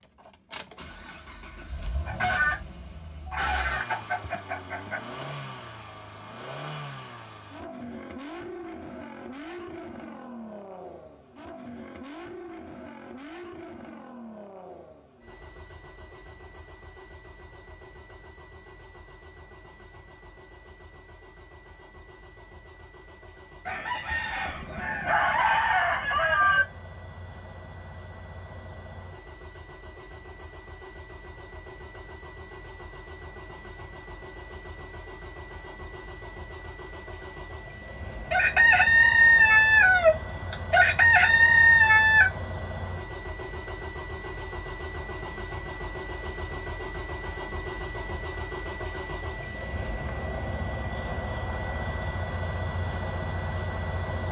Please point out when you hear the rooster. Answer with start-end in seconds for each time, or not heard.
1.0-5.0, 23.6-26.6, 38.3-42.3.